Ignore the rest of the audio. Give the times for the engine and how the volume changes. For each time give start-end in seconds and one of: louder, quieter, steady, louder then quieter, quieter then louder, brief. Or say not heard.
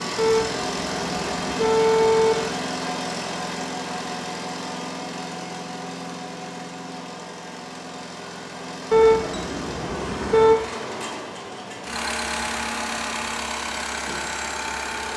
0.0-15.1 quieter then louder.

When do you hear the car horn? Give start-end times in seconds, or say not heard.
0.1-2.5, 8.9-10.6.